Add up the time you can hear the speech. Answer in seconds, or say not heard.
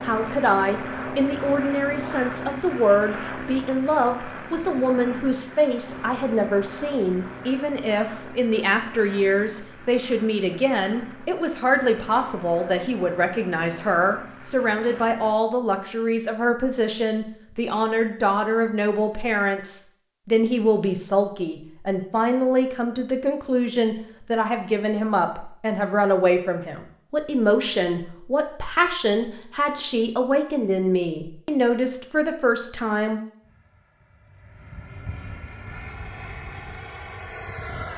33 s.